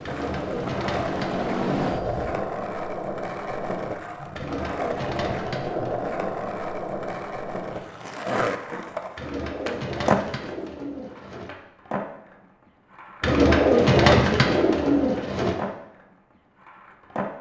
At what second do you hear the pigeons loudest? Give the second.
14 s.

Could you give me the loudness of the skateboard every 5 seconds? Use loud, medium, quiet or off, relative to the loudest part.
loud, loud, loud, medium.